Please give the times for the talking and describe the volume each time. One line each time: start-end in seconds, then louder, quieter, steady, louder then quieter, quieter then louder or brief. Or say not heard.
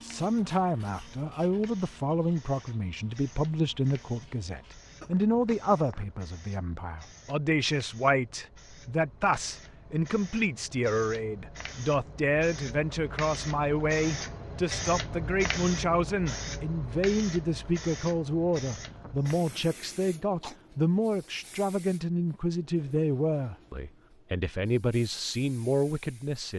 0.0-26.5 steady.